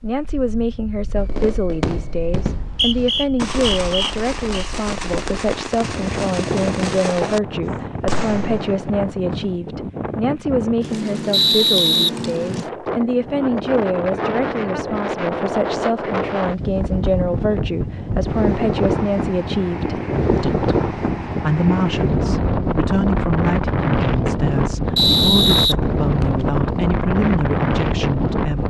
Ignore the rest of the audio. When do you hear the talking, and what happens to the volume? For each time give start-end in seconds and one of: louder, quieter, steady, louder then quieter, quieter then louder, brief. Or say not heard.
0.0-28.6 steady.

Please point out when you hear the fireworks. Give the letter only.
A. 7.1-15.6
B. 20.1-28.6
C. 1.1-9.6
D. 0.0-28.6
C.